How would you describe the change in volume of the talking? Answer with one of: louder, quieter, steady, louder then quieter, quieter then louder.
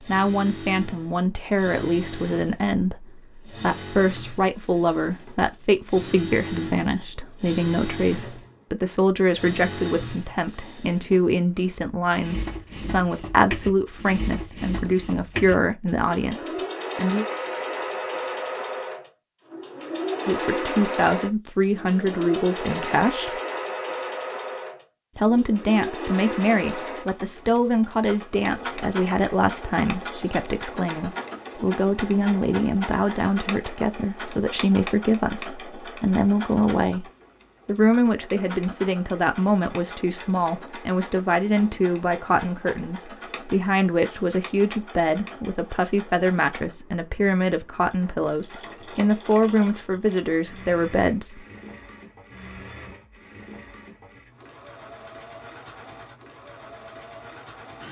steady.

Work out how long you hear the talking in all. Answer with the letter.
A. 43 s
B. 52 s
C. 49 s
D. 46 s
D.